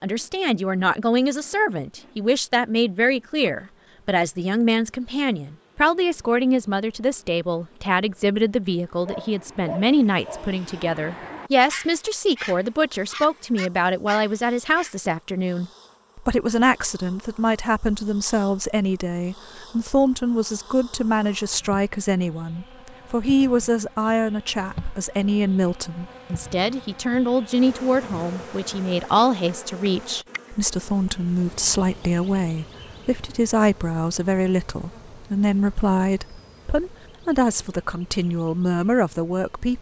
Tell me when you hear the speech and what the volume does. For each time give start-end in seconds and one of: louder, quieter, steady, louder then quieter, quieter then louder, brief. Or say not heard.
0.0-39.7 steady.